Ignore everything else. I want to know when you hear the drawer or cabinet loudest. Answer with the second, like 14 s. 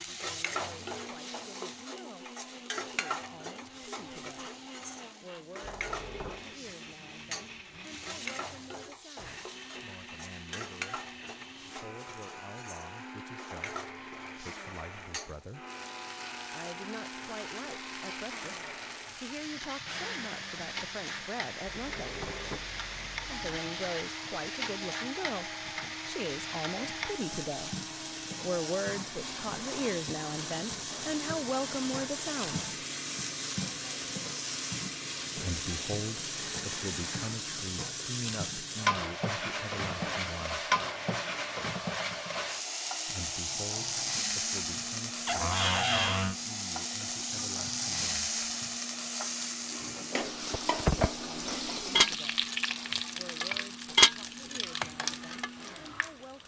46 s.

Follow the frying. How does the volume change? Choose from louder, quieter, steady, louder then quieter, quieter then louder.
louder.